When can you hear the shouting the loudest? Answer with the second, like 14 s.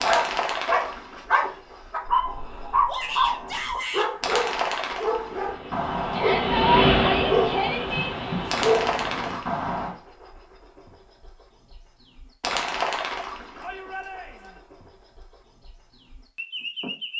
7 s.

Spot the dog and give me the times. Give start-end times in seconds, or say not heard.
0.0-9.9.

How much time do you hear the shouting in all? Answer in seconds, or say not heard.
4 s.